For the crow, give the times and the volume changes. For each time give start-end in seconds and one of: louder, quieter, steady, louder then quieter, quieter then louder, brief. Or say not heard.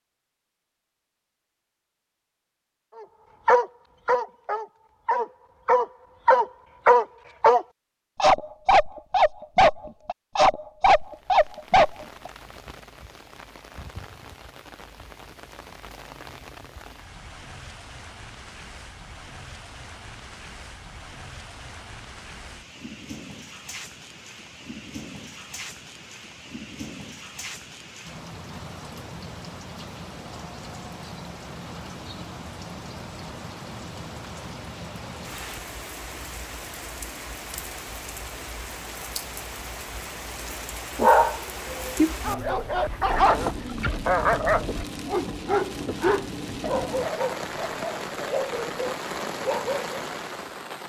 not heard.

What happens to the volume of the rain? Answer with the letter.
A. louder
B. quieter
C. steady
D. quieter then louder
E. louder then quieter
A.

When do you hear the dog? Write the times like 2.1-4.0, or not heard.
3.5-12.3, 41.0-50.0.